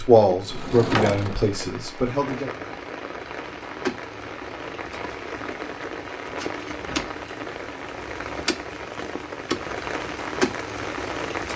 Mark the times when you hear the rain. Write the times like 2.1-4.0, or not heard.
0.0-11.5.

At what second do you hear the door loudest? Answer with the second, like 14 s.
1 s.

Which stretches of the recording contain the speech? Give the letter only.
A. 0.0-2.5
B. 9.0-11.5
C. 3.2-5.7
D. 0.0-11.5
A.